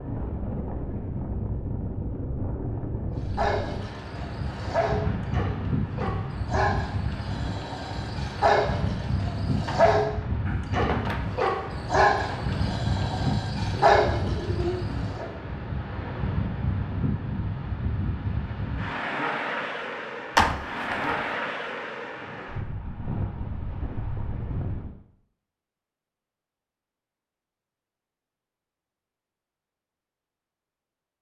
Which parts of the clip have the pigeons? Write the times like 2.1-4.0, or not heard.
13.7-15.4.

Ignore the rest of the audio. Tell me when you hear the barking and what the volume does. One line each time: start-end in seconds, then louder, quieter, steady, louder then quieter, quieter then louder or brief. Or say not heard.
3.4-15.2 louder.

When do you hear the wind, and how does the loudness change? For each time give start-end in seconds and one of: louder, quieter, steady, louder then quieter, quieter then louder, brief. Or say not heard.
0.0-24.9 steady.